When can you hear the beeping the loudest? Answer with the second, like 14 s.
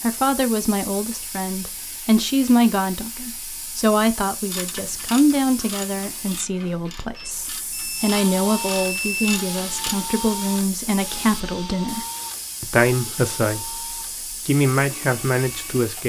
9 s.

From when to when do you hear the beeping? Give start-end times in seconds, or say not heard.
7.2-9.4.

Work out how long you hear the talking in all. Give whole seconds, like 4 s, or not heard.
15 s.